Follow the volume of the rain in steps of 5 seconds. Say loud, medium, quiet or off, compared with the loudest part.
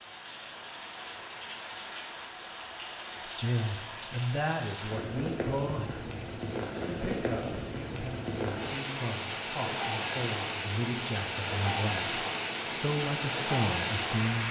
medium, loud, loud.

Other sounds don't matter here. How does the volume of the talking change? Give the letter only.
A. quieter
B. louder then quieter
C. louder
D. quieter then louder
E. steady
D.